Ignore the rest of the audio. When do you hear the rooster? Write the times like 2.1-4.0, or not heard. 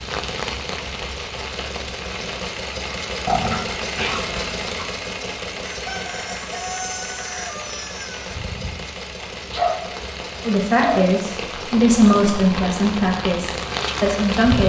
5.7-8.3.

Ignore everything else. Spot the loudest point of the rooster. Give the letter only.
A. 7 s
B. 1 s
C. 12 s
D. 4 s
A.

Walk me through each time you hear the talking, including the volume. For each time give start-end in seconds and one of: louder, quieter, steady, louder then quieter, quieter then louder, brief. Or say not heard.
10.4-14.6 louder then quieter.